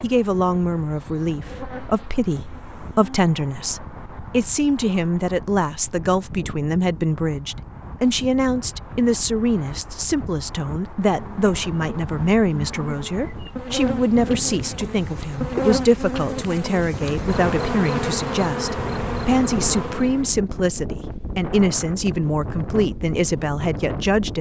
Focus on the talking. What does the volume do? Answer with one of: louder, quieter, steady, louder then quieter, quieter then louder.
steady.